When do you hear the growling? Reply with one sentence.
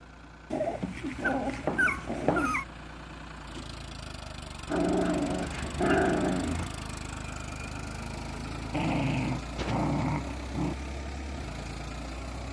The growling can be heard from 0.5 to 2.6 s, from 4.7 to 6.7 s and from 8.7 to 10.8 s.